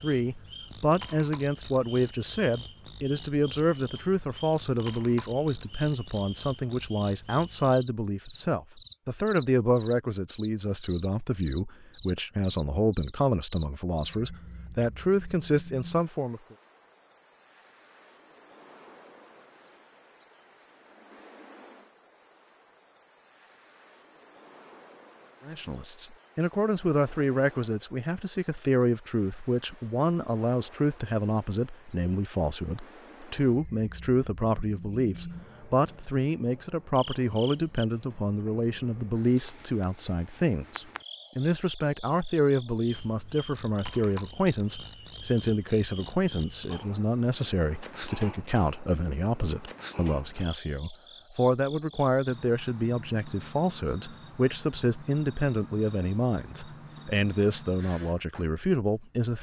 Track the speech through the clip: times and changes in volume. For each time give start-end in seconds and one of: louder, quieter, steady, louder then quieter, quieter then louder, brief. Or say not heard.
0.0-16.6 steady
25.4-59.3 steady.